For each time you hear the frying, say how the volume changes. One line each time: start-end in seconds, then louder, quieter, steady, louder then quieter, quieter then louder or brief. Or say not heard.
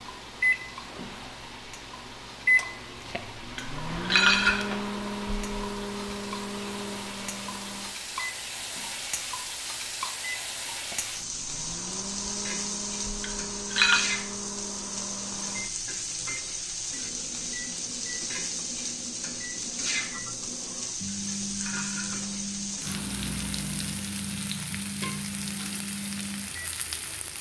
0.0-27.3 louder.